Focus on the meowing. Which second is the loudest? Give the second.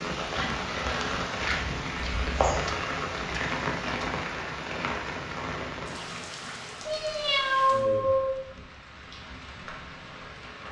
8 s.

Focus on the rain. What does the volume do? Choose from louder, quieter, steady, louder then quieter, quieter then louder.
quieter.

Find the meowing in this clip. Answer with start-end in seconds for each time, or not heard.
1.9-2.8, 6.8-8.3.